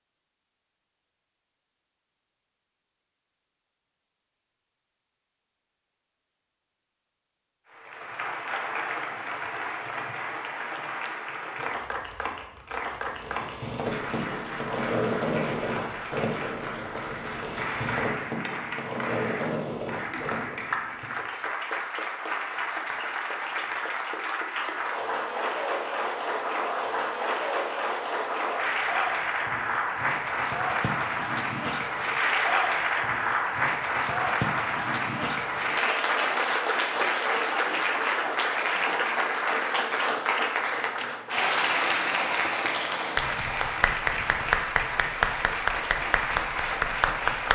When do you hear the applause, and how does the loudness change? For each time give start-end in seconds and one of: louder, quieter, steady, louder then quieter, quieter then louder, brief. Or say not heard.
7.7-47.5 louder.